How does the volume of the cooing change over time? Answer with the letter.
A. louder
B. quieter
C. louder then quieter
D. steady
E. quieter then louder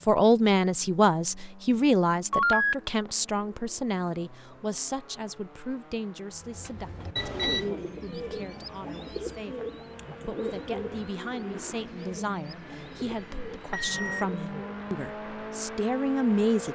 B.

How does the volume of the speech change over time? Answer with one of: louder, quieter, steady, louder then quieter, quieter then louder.
quieter then louder.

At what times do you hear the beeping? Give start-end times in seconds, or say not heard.
2.3-3.1, 7.2-7.7, 13.6-14.5.